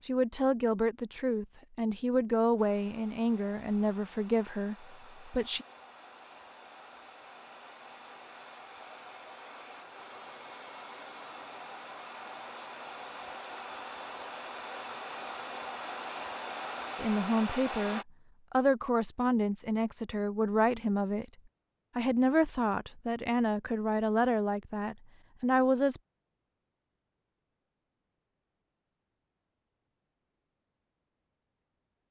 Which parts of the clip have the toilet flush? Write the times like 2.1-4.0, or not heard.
not heard.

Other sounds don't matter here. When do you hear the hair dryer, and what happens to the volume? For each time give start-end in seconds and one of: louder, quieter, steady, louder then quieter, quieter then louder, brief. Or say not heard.
2.5-18.1 louder.